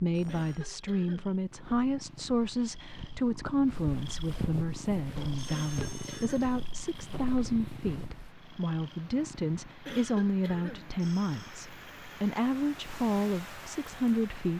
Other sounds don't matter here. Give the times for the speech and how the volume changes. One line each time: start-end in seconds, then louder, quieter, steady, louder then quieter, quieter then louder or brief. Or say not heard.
0.0-14.5 steady.